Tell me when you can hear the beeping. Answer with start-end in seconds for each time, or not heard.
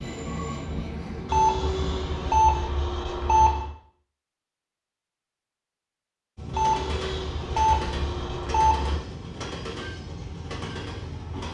1.2-3.7, 6.5-9.1.